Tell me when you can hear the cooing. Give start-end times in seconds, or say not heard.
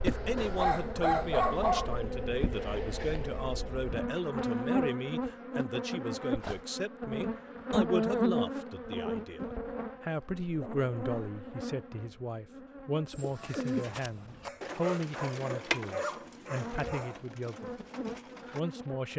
13.1-18.6.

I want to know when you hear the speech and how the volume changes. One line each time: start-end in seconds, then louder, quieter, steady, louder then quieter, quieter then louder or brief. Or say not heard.
0.0-17.7 steady
18.5-19.1 brief.